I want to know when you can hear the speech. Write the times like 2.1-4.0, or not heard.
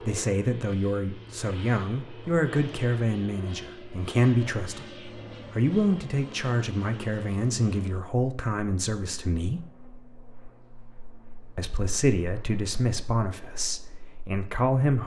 0.0-9.7, 11.6-15.0.